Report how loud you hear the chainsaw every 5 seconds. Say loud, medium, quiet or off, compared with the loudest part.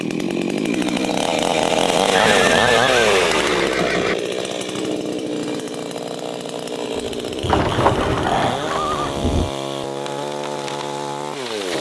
loud, medium, medium.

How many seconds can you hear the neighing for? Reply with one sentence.
The neighing can be heard for 4 seconds in total.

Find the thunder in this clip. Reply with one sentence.
You can hear the thunder from 7.0 to 9.5 s.